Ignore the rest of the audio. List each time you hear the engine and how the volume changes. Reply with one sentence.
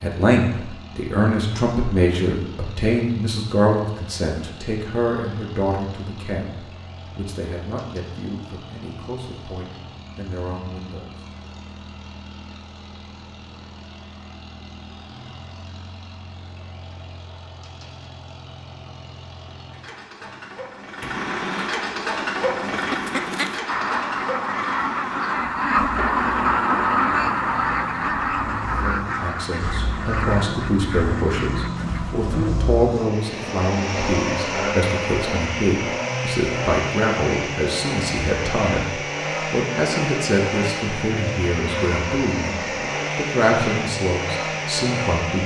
The engine can be heard from 0.0 to 45.4 s, getting louder.